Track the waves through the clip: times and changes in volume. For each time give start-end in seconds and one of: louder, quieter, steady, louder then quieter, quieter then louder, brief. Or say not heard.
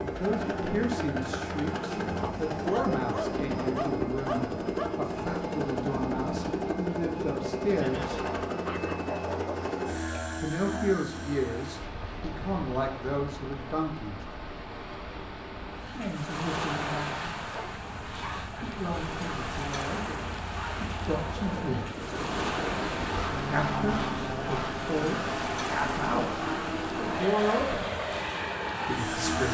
11.1-29.4 louder.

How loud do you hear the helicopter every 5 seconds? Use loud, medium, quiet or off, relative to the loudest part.
loud, loud, medium, quiet, loud, loud.